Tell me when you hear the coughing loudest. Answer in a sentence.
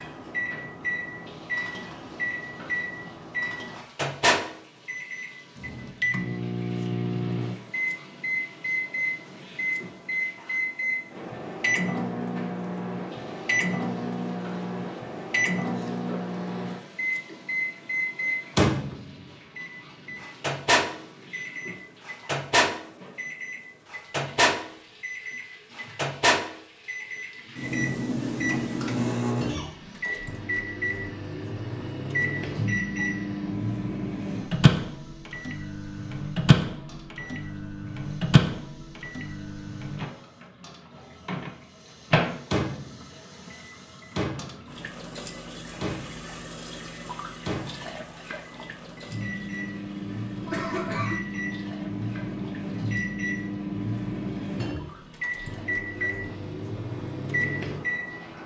The volume of the coughing peaks at 51 seconds.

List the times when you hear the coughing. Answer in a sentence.
The coughing can be heard from 15.6 to 17.4 s, from 29.4 to 30.3 s and from 50.5 to 51.2 s.